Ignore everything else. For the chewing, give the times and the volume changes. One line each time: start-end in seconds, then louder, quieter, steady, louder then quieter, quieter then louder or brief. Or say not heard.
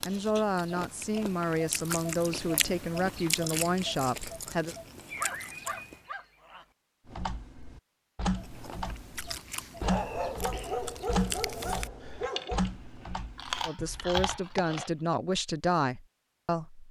0.0-6.0 louder then quieter
8.3-14.9 louder.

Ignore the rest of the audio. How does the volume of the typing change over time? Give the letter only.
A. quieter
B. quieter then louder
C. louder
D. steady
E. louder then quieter
A.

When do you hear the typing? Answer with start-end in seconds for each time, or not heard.
7.0-14.4.